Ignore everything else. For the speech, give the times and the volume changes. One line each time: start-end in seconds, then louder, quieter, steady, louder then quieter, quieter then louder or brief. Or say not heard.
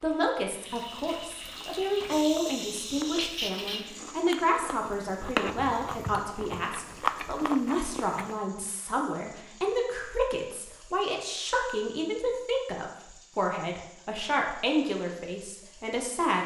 0.0-16.4 steady.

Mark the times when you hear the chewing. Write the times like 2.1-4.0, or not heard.
1.5-8.4.